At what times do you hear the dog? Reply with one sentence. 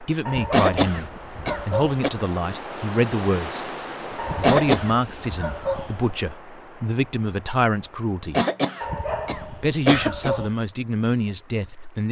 You can hear the dog from 0.2 to 2.0 s, from 4.2 to 6.2 s and from 8.8 to 10.6 s.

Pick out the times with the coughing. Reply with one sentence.
The coughing can be heard from 0.5 to 2.1 s, from 4.4 to 4.9 s and from 8.3 to 10.3 s.